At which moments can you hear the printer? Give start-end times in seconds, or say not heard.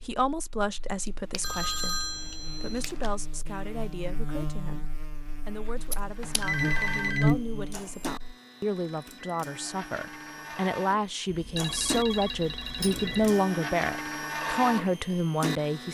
6.0-15.8.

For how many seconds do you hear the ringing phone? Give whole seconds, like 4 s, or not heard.
5 s.